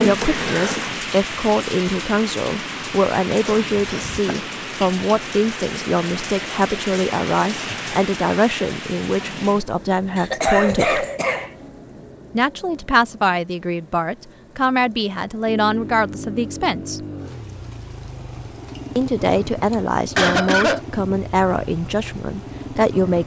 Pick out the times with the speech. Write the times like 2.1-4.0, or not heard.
0.0-11.1, 12.3-17.0, 18.9-23.2.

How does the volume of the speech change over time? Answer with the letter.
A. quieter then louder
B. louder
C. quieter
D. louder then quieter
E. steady
E.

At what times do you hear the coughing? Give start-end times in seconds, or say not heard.
3.5-4.5, 10.2-11.5, 19.7-20.8.